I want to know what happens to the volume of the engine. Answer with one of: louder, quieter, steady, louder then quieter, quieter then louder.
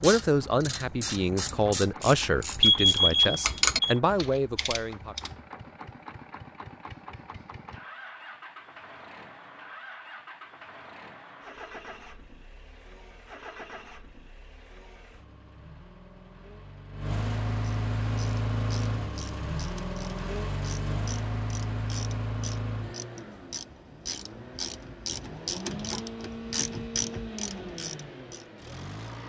louder then quieter.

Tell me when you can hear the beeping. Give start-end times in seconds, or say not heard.
2.6-4.0.